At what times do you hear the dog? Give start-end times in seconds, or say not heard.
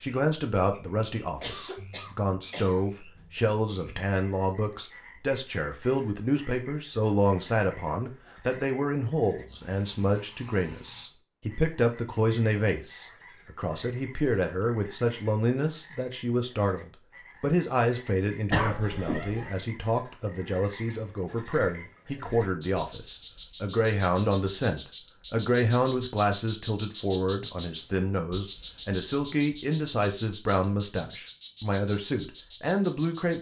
not heard.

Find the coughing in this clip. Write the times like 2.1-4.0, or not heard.
1.4-2.9, 18.5-19.5.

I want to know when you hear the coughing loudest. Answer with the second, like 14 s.
19 s.